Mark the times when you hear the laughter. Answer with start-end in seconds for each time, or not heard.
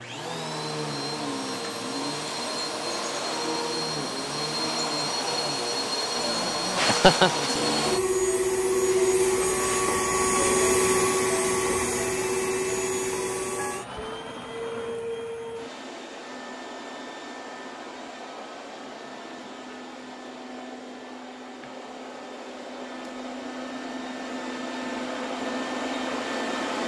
6.2-7.4.